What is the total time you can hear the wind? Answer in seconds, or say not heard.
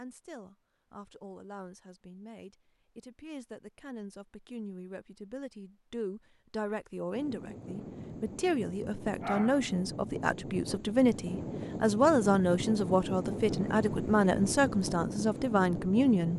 9 s.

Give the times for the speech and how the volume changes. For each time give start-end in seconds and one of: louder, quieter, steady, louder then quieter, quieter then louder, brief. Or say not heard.
0.0-16.3 louder.